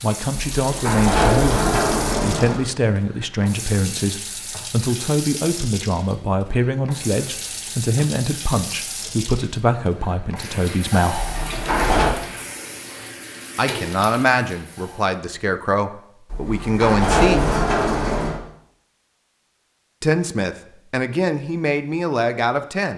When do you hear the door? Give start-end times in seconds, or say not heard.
0.3-2.6, 11.2-12.2, 16.3-18.4.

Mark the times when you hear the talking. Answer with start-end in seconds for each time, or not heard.
0.0-11.2, 13.6-17.5, 20.0-22.9.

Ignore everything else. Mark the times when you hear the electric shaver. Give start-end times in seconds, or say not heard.
not heard.